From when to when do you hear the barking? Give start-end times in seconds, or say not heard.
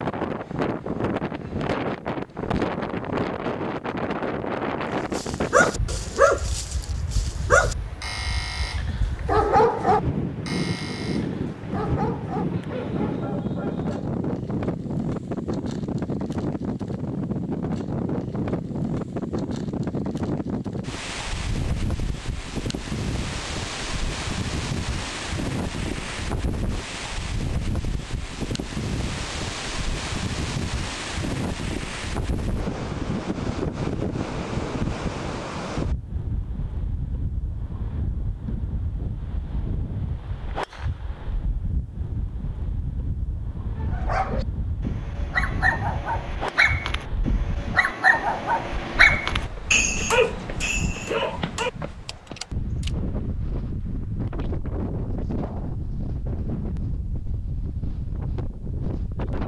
5.1-14.1, 43.8-52.9.